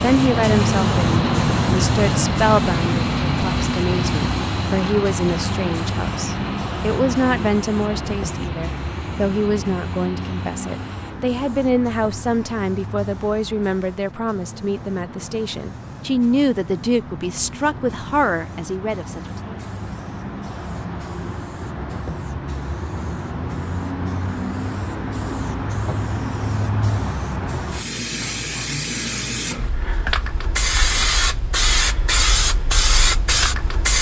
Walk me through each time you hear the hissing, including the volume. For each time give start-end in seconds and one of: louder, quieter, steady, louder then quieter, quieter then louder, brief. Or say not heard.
0.0-33.9 quieter then louder.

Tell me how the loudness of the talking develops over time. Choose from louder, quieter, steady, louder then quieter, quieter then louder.
steady.